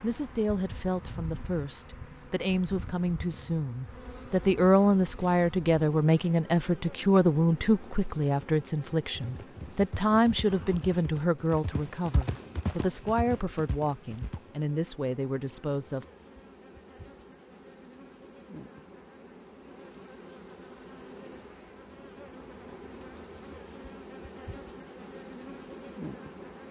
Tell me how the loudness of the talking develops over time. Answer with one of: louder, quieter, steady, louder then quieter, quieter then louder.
louder then quieter.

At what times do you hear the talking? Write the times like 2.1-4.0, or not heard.
0.0-16.1.